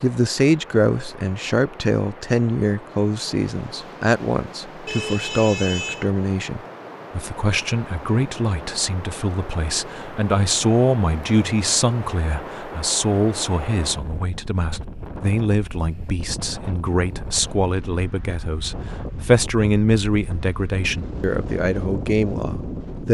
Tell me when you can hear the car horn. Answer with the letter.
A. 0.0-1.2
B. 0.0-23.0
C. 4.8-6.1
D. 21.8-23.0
C.